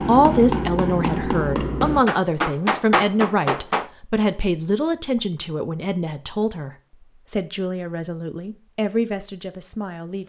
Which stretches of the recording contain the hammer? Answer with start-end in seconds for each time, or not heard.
0.0-3.9.